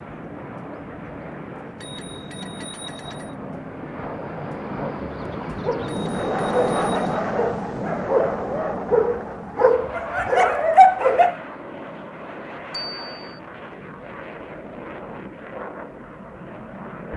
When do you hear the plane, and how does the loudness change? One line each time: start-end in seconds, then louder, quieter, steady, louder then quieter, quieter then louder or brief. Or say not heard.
0.0-17.1 louder then quieter.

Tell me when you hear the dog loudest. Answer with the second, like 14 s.
11 s.